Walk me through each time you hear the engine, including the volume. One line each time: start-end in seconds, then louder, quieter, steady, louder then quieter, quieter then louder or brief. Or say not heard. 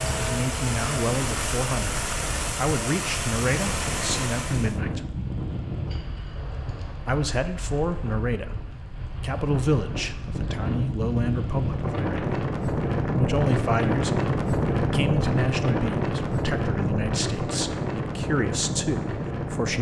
0.0-4.8 steady.